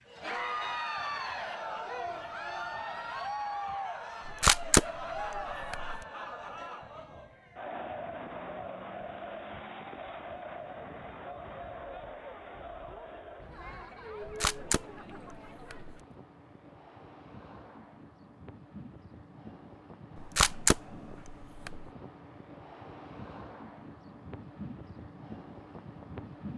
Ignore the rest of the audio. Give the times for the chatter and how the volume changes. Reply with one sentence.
The chatter can be heard from 0.1 to 16.1 s, getting quieter.